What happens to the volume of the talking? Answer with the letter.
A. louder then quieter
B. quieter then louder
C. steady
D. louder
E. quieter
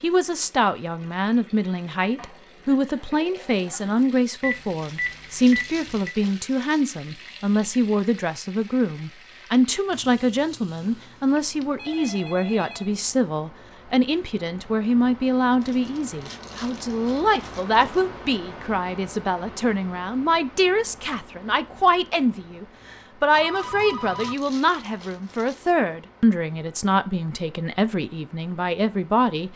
C.